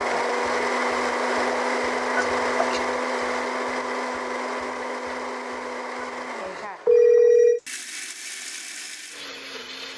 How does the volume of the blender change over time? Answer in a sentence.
The loudness of the blender goes down.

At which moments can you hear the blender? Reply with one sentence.
You can hear the blender from 0.0 to 9.9 s.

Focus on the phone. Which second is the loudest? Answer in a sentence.
The volume of the phone peaks at 7 seconds.